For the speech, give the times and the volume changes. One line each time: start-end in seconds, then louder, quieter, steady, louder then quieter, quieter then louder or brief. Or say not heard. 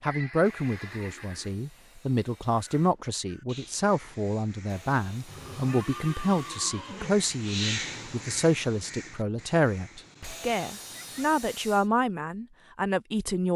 0.0-13.5 steady.